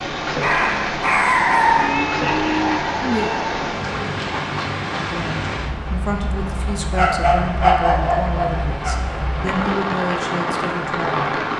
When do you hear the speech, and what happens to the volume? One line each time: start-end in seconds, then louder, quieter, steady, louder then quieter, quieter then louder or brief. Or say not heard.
5.0-11.4 steady.